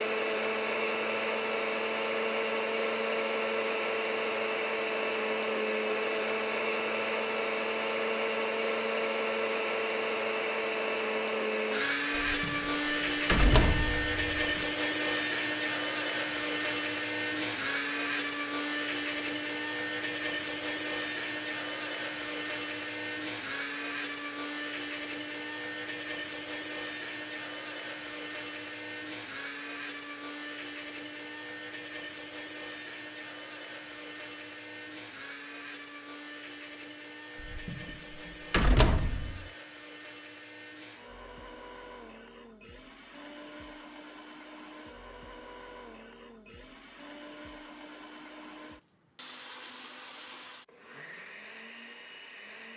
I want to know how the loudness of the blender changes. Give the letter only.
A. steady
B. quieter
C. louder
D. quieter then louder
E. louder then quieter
B.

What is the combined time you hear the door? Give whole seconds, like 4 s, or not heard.
5 s.